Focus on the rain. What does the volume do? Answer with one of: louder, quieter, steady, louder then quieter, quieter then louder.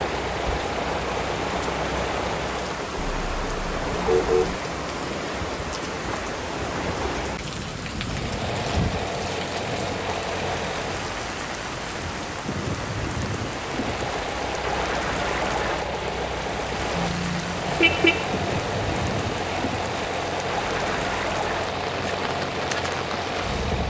steady.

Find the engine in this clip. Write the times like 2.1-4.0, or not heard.
0.0-2.8, 8.0-11.1, 13.7-23.8.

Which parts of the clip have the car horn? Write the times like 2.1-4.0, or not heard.
3.0-4.5, 16.9-18.2.